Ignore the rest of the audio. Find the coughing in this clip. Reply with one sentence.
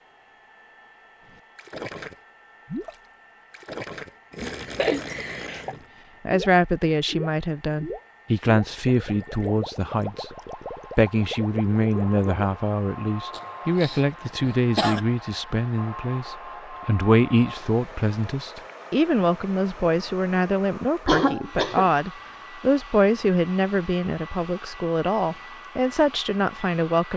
The coughing can be heard from 4.4 to 5.8 s, from 13.3 to 15.0 s and from 21.1 to 21.9 s.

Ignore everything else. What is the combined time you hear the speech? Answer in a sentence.
The speech can be heard for 20 seconds in total.